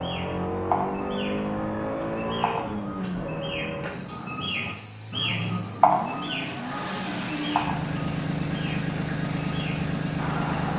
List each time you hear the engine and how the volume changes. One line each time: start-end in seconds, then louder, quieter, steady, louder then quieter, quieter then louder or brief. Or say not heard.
0.0-10.7 quieter then louder.